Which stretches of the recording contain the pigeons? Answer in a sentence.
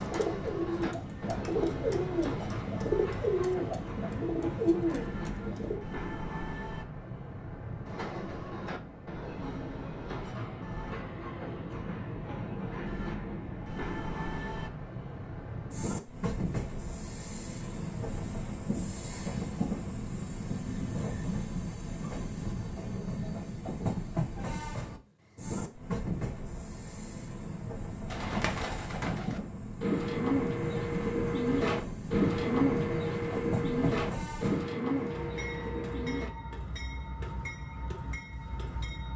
The pigeons can be heard from 0.0 to 5.8 s and from 28.1 to 36.3 s.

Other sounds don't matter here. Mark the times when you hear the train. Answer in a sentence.
You can hear the train from 0.0 to 39.1 s.